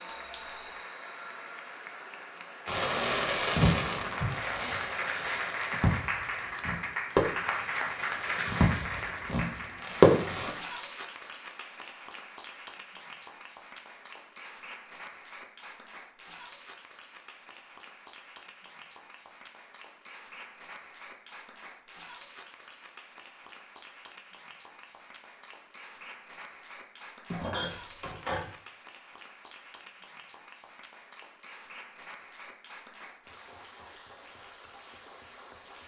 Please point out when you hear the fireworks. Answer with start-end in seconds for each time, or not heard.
2.6-10.5.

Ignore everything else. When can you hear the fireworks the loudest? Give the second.
10 s.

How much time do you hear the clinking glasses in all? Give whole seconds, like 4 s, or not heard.
2 s.